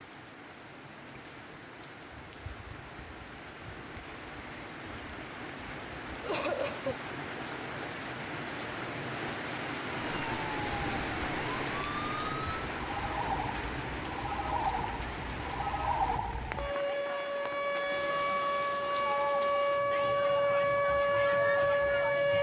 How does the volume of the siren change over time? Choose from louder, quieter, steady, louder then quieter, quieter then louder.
louder.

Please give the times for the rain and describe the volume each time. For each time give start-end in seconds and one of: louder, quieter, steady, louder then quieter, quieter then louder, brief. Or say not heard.
0.0-22.3 louder then quieter.